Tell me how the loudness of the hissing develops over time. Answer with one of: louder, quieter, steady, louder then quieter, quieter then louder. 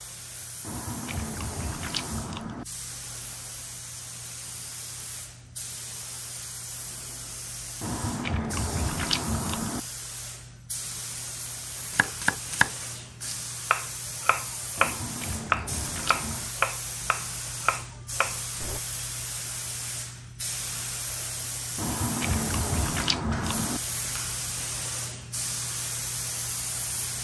louder.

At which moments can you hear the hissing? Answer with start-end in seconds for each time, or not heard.
0.0-27.1.